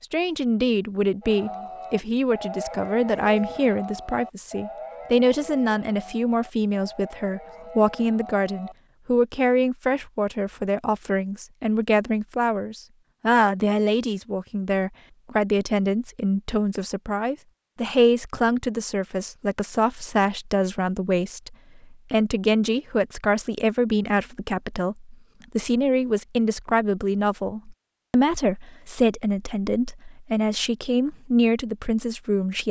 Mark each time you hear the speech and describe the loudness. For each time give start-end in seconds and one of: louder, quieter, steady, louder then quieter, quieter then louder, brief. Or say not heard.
0.0-32.6 steady.